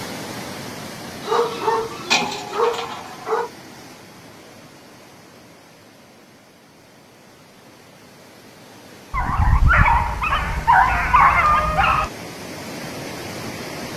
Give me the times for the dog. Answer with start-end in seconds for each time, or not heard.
1.2-3.5, 9.1-12.1.